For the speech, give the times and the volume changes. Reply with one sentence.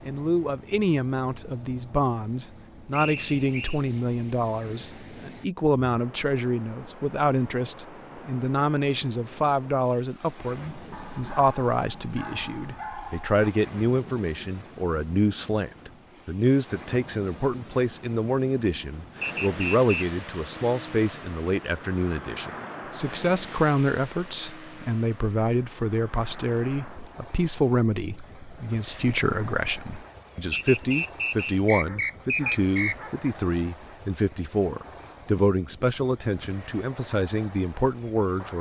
The speech can be heard from 0.0 to 38.5 s, at a steady volume.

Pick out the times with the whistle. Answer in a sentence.
You can hear the whistle from 2.9 to 3.8 s, from 19.2 to 20.1 s and from 30.5 to 33.0 s.